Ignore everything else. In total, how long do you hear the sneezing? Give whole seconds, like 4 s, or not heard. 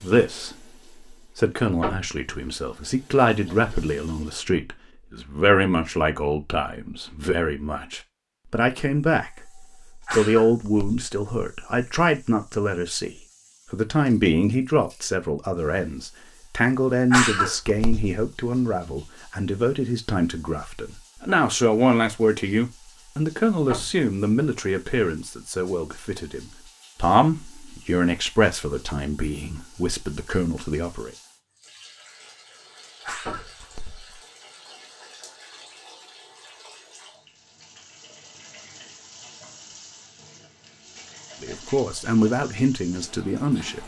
3 s.